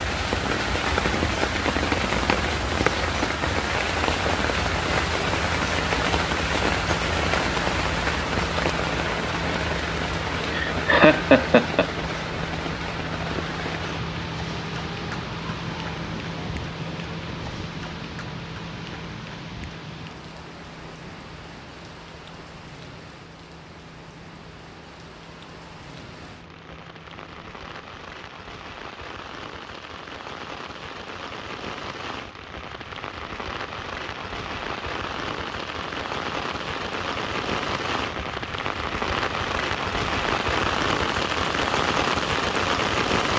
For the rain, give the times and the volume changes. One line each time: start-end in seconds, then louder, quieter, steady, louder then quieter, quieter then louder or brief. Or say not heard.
0.0-43.3 quieter then louder.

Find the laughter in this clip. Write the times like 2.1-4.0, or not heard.
10.5-11.8.